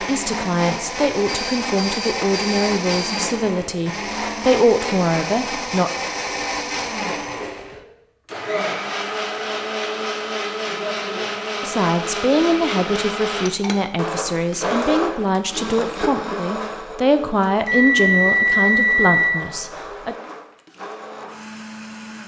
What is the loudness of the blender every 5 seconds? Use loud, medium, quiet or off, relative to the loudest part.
loud, loud, loud, medium, medium.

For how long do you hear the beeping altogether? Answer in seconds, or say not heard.
4 s.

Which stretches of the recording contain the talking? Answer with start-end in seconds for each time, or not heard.
0.0-5.9, 11.6-20.1.